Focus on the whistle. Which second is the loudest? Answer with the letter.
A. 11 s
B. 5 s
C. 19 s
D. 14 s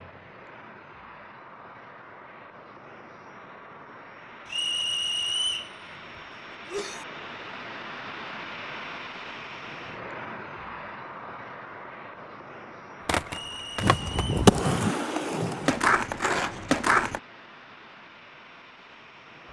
B.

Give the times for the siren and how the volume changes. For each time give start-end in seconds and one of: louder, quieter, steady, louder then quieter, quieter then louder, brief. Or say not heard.
not heard.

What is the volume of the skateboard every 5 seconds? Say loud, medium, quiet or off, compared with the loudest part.
off, off, loud, loud.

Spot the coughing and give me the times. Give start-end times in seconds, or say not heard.
5.8-7.0.